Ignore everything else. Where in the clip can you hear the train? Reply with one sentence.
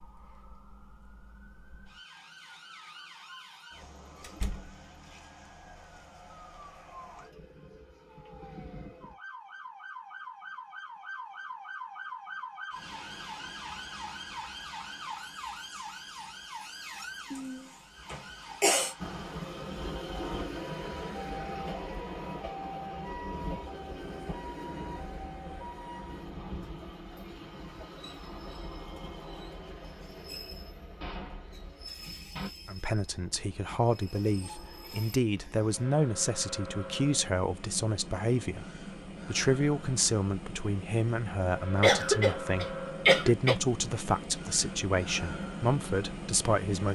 The train can be heard from 18.9 to 46.8 s.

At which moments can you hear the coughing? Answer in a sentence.
The coughing can be heard from 17.3 to 18.9 s and from 41.8 to 43.5 s.